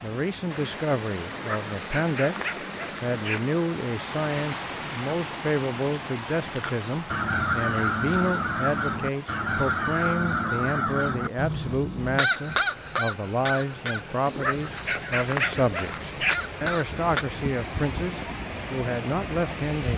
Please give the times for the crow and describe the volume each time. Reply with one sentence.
You can hear the crow from 6.5 to 17.2 s, getting quieter.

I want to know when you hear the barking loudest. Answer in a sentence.
The volume of the barking peaks at 15 seconds.